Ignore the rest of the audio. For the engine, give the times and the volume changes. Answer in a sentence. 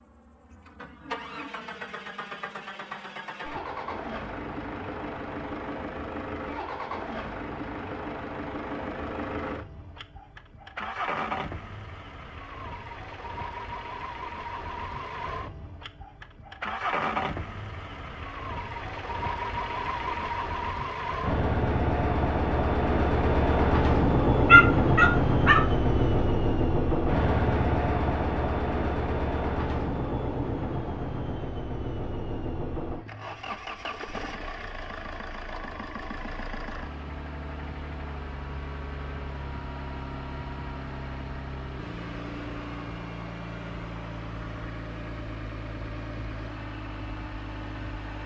The engine can be heard from 0.0 to 48.2 s, getting louder then quieter.